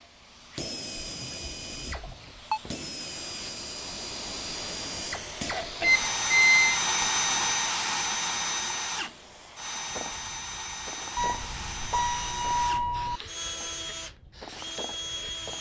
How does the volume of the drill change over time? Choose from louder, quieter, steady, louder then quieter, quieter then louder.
louder then quieter.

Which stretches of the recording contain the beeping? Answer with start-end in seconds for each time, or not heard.
1.2-2.6, 5.8-6.8, 11.2-13.2.